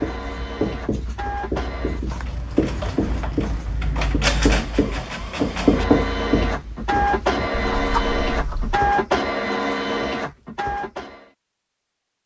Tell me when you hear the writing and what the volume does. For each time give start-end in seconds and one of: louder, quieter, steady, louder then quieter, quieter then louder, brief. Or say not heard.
0.0-8.8 louder then quieter.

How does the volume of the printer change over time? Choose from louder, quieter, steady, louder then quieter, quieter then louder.
louder.